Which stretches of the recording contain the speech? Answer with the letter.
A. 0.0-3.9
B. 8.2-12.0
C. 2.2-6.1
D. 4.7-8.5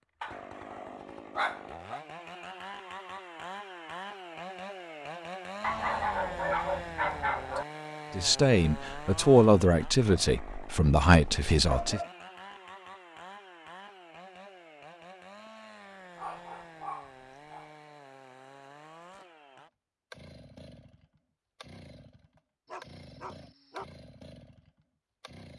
B.